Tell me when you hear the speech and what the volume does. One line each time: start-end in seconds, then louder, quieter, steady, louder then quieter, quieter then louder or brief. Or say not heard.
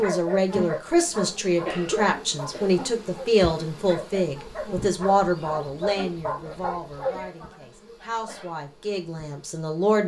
0.0-10.0 quieter.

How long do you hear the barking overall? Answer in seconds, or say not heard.
7 s.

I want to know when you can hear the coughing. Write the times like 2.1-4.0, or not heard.
1.6-3.0, 7.2-8.6.